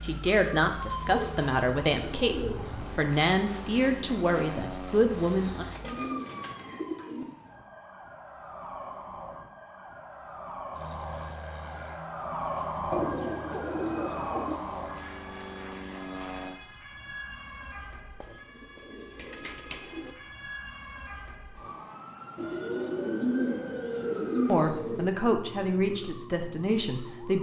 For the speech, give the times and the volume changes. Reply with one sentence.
The speech can be heard from 0.0 to 5.7 s, at a steady volume; and briefly from 24.4 to 27.3 s.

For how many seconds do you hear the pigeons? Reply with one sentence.
You can hear the pigeons for 10 seconds altogether.